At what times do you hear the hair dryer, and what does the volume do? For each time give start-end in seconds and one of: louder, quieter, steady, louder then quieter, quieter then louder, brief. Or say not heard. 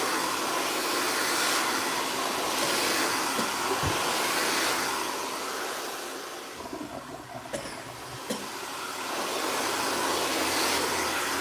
0.0-11.3 quieter then louder.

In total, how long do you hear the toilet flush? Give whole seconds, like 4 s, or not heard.
2 s.